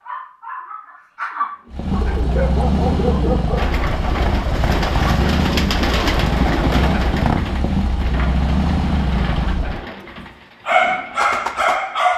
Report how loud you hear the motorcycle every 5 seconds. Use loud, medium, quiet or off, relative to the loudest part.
loud, loud, off.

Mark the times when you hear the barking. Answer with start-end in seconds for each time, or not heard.
0.0-3.7, 10.2-12.1.